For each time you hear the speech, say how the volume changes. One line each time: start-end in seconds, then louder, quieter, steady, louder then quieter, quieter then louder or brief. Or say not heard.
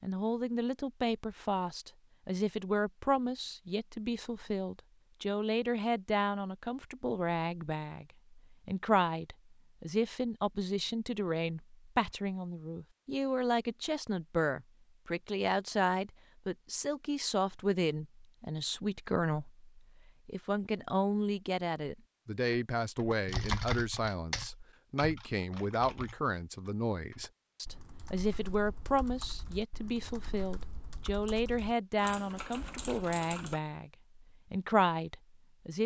0.0-35.8 steady.